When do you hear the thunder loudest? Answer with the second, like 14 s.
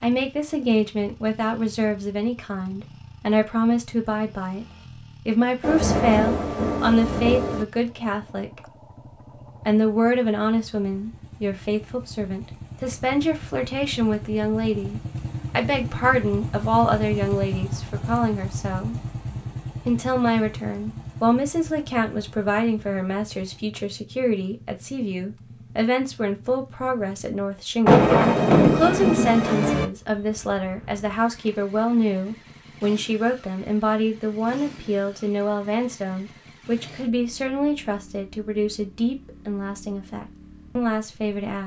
28 s.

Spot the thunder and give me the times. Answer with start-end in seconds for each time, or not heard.
5.6-7.7, 27.9-29.9.